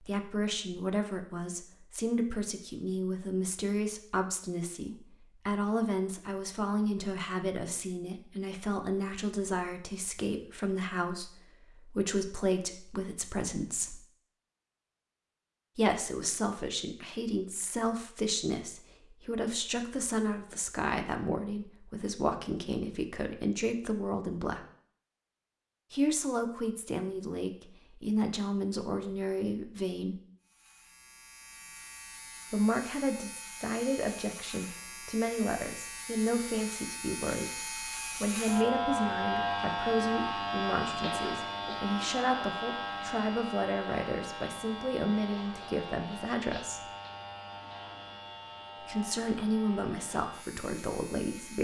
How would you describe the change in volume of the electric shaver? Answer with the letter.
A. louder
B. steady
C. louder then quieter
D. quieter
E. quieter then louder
C.